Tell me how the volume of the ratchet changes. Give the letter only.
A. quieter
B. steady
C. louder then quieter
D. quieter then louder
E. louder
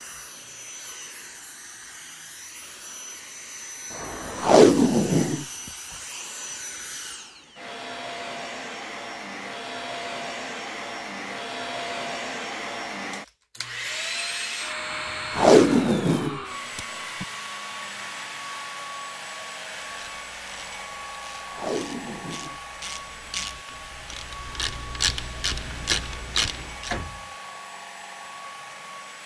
E.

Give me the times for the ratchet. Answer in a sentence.
The ratchet can be heard from 19.8 to 26.9 s.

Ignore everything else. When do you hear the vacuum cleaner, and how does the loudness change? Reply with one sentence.
The vacuum cleaner can be heard from 0.0 to 29.2 s, getting louder then quieter.